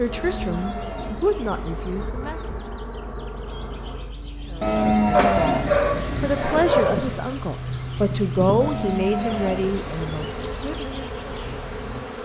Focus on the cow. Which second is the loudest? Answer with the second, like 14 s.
5 s.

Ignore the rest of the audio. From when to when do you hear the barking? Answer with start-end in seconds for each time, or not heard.
5.2-7.1.